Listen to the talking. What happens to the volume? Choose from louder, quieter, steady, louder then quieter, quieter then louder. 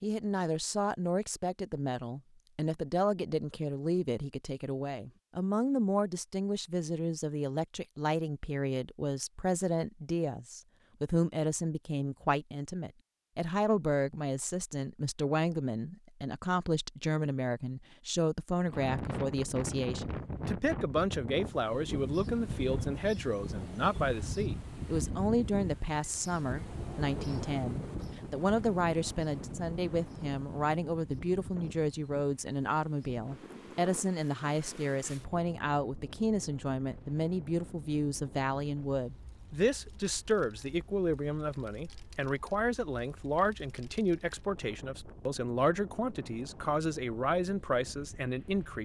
steady.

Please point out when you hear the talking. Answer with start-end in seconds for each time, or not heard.
0.0-48.8.